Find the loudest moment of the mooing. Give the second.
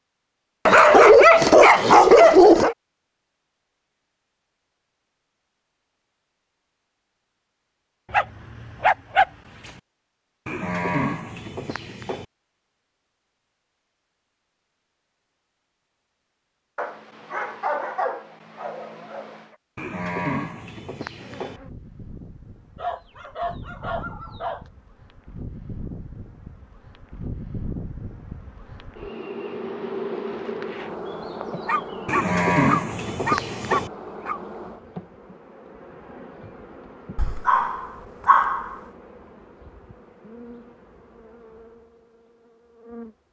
33 s.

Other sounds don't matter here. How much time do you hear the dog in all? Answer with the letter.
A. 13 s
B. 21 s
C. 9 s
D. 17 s
A.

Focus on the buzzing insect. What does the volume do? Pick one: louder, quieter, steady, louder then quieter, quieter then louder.
louder then quieter.